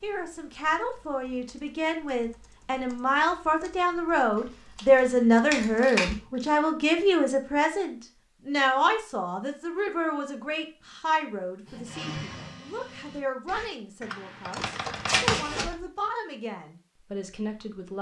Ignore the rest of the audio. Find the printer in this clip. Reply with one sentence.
You can hear the printer from 11.7 to 13.2 s.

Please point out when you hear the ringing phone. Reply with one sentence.
The ringing phone can't be heard in this clip.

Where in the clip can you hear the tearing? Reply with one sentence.
You can hear the tearing from 4.8 to 6.5 s and from 14.6 to 15.7 s.